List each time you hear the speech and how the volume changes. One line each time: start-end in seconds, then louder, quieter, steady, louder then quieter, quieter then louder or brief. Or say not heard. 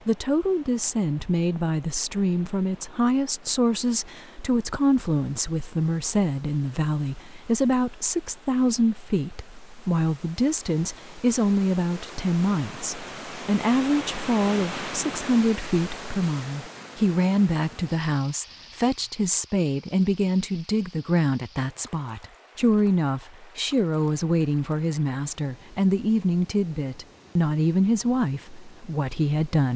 0.1-29.7 steady.